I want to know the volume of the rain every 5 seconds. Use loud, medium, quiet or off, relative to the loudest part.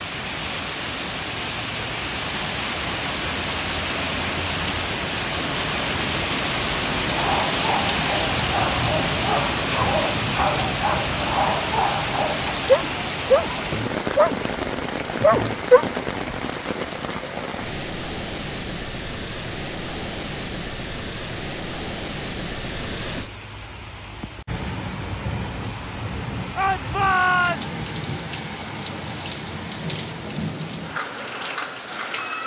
loud, loud, loud, medium, medium, medium, medium.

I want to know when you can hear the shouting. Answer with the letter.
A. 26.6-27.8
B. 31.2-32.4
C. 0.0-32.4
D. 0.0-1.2
A.